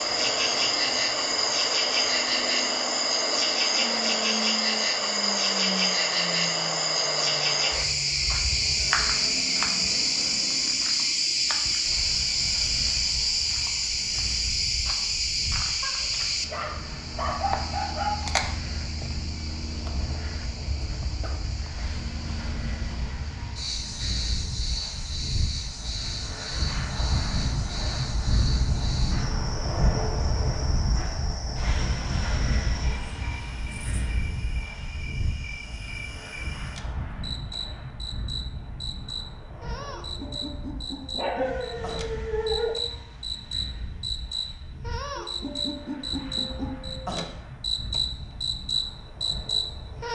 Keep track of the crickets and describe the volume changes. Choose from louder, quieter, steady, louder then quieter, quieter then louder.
quieter then louder.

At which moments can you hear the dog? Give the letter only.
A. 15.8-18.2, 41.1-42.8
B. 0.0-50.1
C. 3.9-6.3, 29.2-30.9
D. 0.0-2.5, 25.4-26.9
A.